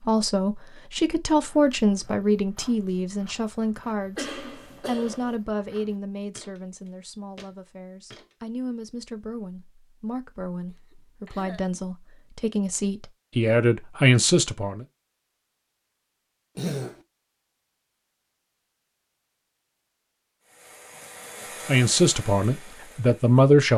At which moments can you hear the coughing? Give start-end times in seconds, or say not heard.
4.2-5.3, 10.7-11.7, 16.6-17.0.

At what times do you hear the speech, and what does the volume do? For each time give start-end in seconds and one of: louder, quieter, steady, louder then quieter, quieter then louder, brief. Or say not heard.
0.1-14.8 quieter then louder
21.6-23.7 brief.